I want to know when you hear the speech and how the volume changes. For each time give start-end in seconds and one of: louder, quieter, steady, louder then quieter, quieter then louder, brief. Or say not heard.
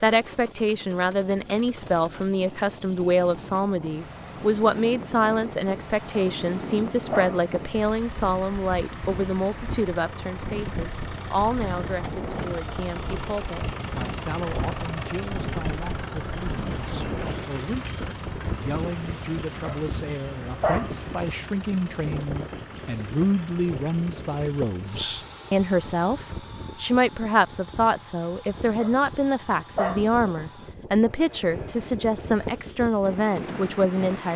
0.0-34.3 quieter then louder.